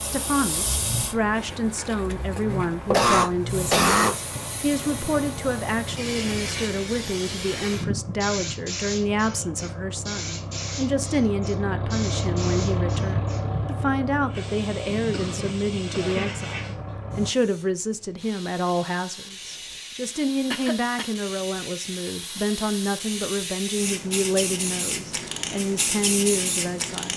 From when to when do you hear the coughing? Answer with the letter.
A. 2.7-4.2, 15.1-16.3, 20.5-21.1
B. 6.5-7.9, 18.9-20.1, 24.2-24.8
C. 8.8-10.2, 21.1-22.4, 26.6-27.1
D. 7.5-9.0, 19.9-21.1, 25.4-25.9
A.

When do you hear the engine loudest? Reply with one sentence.
The loudest moment of the engine is at 13 seconds.